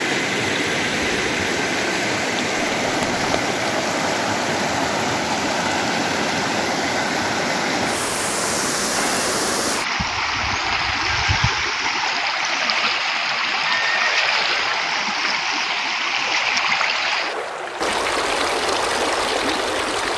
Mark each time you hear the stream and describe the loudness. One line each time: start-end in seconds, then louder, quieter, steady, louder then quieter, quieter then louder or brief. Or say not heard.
0.0-20.1 steady.